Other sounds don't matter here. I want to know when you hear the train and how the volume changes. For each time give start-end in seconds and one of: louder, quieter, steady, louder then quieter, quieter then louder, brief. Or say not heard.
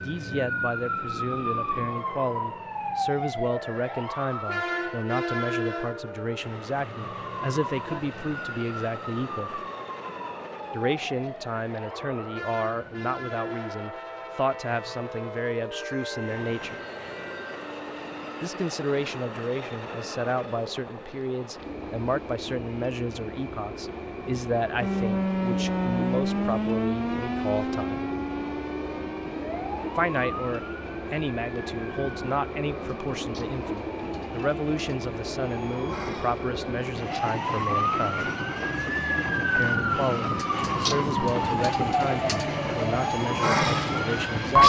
0.0-44.6 louder.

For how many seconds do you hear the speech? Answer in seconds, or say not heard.
39 s.